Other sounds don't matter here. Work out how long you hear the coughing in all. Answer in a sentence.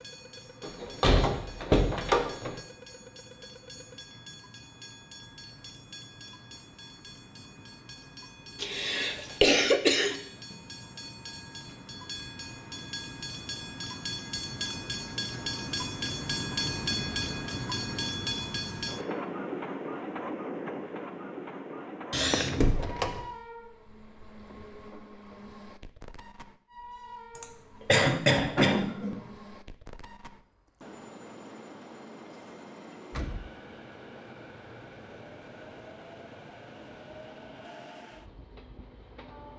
You can hear the coughing for 4 seconds altogether.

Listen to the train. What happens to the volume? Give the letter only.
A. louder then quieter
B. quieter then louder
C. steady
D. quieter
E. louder
A.